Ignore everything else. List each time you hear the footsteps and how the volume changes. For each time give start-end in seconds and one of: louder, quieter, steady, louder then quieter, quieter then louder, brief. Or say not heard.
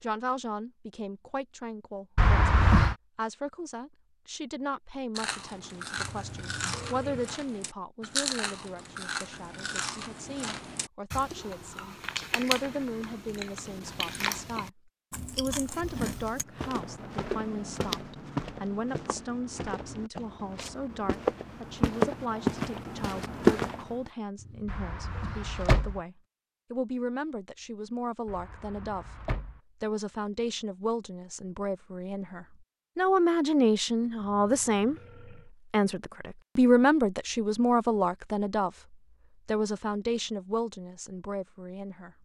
16.6-24.1 quieter then louder.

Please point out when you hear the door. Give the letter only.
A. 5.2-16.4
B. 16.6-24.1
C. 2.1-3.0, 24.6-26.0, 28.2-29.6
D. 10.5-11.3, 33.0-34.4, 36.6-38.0
C.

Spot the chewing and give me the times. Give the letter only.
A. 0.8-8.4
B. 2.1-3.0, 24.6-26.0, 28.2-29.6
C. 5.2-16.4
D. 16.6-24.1
C.